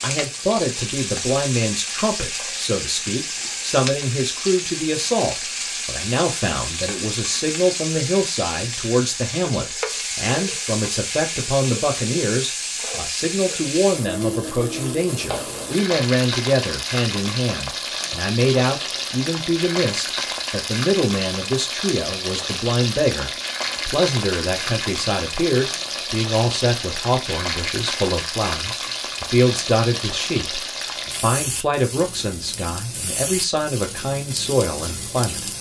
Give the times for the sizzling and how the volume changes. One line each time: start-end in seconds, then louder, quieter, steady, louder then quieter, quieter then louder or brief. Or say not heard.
0.0-35.5 steady.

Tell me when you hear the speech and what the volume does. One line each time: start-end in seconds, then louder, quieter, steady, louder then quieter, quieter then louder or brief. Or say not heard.
0.0-35.5 steady.